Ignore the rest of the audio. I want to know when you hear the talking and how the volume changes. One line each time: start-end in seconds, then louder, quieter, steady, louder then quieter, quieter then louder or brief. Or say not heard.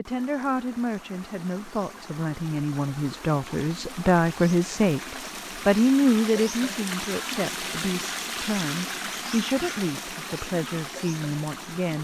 0.0-11.9 louder then quieter.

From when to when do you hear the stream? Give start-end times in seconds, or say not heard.
0.1-11.9.